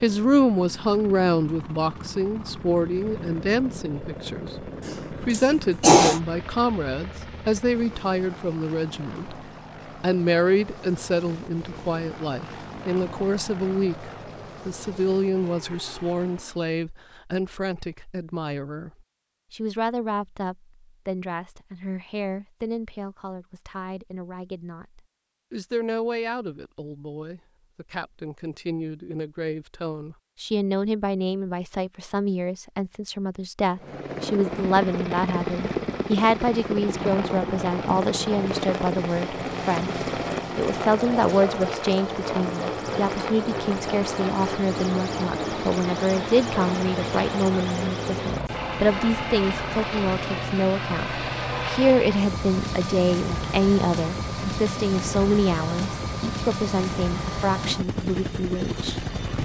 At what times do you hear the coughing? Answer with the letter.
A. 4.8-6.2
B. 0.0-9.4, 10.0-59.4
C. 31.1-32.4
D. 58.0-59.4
A.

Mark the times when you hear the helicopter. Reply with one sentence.
You can hear the helicopter from 0.0 to 16.8 s and from 33.8 to 59.4 s.